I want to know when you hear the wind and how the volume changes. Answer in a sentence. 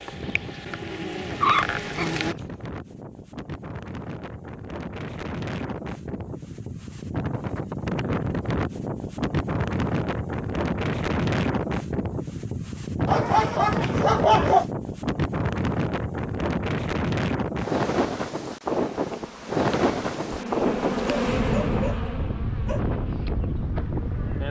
You can hear the wind from 0.0 to 24.4 s, getting louder.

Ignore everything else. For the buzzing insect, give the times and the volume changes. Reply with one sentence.
The buzzing insect can be heard briefly from 0.0 to 2.4 s; and from 18.6 to 24.4 s, getting louder then quieter.